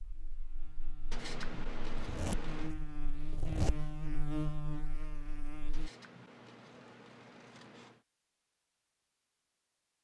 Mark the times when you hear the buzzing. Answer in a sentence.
The buzzing can be heard from 0.0 to 5.9 s.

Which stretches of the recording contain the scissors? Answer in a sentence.
The scissors can be heard from 1.1 to 2.8 s and from 5.7 to 8.0 s.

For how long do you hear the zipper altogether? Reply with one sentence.
The zipper can be heard for 2 seconds in total.